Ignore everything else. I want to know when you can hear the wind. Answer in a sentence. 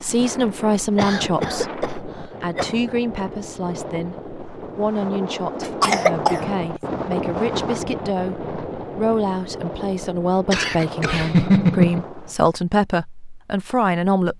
You can hear the wind from 0.0 to 12.4 s.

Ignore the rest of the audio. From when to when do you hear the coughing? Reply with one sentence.
You can hear the coughing from 0.9 to 2.8 s, from 5.6 to 6.4 s and from 10.5 to 12.0 s.